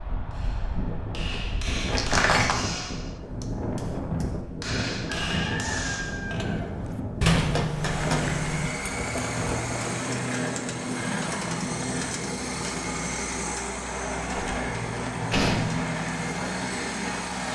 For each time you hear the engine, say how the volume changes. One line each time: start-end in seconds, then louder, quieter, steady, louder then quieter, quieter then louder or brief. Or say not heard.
7.8-17.5 steady.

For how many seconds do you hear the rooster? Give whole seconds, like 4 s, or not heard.
2 s.